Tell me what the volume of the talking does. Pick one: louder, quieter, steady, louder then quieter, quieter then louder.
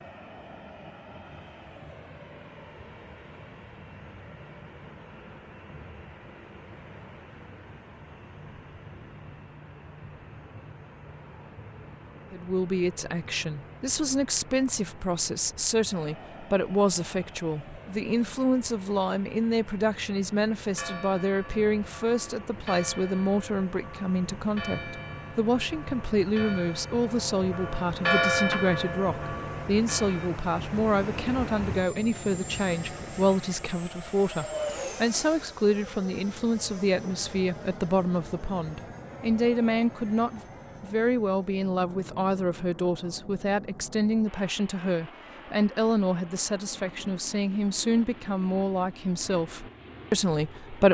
steady.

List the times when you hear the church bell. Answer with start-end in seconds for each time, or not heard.
20.6-30.3.